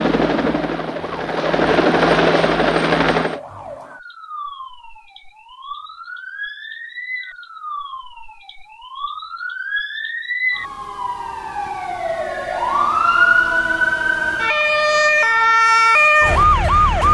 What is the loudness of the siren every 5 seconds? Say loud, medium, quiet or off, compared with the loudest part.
quiet, quiet, medium, loud.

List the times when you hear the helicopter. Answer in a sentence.
The helicopter can be heard from 0.0 to 3.4 s.